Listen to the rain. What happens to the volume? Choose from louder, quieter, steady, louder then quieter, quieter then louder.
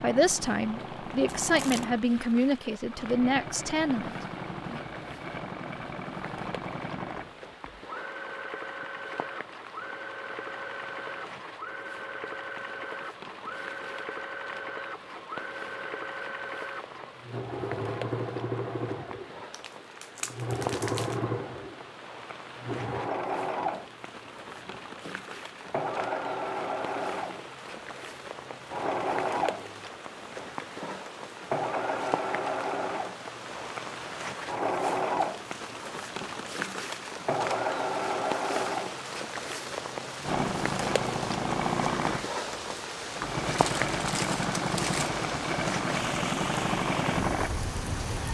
louder.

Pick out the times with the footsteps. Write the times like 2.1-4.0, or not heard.
not heard.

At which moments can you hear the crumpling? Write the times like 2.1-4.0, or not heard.
1.2-1.9, 19.5-21.2, 43.5-45.1.